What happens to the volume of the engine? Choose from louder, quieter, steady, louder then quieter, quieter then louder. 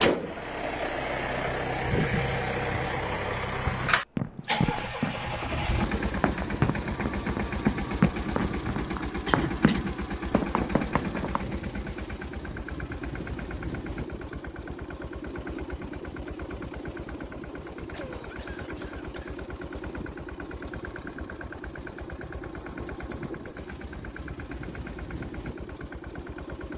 quieter.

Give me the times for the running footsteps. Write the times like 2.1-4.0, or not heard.
4.2-11.6.